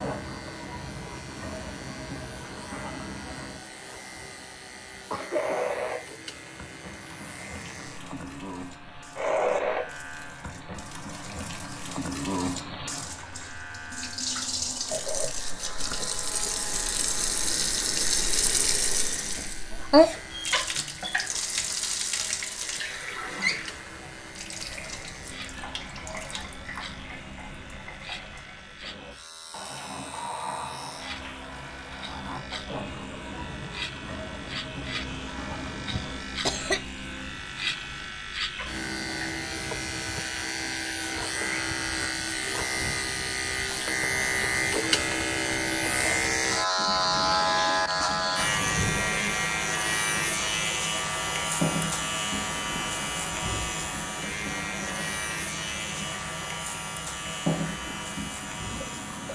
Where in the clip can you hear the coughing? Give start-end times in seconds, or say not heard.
5.0-5.7, 35.0-36.8.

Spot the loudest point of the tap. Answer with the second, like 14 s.
20 s.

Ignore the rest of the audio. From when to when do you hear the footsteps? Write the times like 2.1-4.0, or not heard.
not heard.